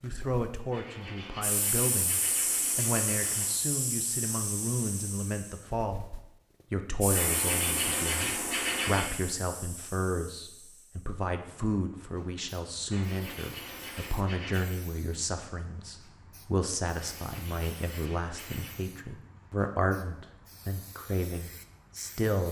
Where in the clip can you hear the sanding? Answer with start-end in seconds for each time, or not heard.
0.7-3.6, 7.1-9.1, 12.9-14.7, 16.9-18.9.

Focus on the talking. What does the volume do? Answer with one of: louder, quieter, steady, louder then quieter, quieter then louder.
steady.